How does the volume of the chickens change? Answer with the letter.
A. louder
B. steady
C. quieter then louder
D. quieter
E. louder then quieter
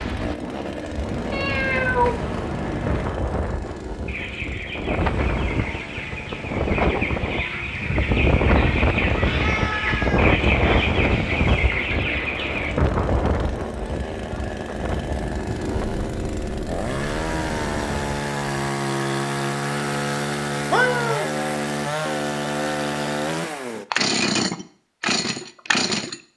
A.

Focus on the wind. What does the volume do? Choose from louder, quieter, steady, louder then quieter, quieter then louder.
louder then quieter.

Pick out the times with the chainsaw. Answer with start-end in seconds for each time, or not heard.
0.0-26.2.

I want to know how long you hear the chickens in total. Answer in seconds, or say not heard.
9 s.